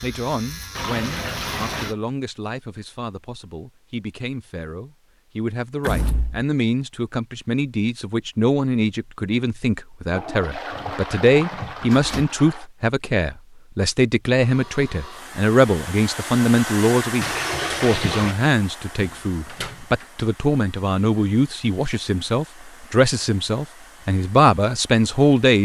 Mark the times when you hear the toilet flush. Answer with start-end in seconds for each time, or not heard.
0.8-1.9, 10.1-12.7, 17.2-18.4.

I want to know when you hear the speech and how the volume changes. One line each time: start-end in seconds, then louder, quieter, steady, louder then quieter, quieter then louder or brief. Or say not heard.
0.0-25.6 louder.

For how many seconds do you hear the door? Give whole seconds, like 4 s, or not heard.
3 s.